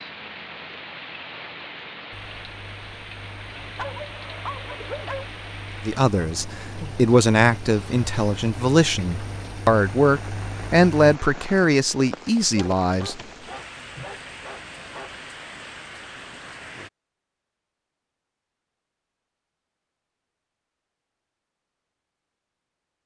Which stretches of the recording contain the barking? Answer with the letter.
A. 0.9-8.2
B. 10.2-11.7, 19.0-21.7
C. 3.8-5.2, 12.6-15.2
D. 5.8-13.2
C.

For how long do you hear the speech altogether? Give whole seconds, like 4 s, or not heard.
7 s.